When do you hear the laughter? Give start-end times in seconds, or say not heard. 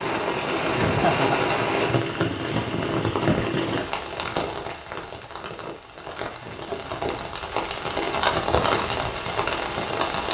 0.8-1.5, 6.4-7.1.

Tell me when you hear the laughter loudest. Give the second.
1 s.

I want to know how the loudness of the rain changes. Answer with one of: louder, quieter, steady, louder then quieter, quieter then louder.
quieter then louder.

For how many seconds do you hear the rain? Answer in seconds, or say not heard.
10 s.